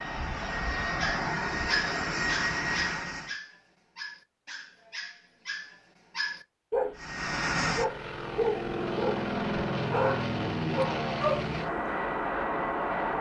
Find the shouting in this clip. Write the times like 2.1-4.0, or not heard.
not heard.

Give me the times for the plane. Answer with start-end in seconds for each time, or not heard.
0.0-3.4, 7.0-13.1.